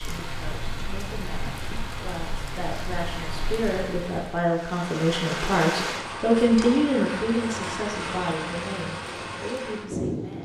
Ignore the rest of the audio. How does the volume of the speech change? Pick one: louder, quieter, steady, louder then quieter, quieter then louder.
louder then quieter.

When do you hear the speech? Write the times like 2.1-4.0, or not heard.
0.0-10.4.